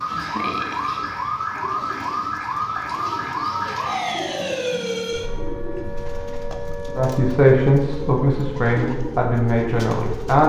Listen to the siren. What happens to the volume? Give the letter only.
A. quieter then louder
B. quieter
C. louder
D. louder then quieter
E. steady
B.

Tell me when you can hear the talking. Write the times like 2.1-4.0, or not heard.
7.0-10.4.